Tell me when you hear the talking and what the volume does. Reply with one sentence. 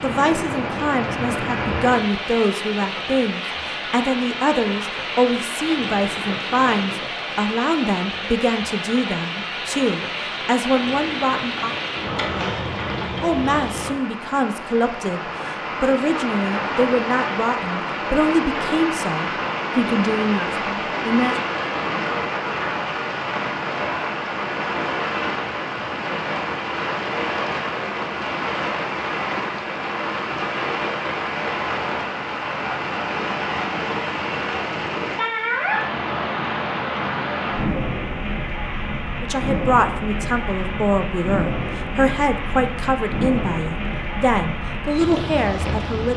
You can hear the talking from 0.0 to 11.8 s, at a steady volume; from 13.2 to 21.4 s, at a steady volume; and from 39.2 to 46.1 s, at a steady volume.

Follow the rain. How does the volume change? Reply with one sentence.
The loudness of the rain stays about the same.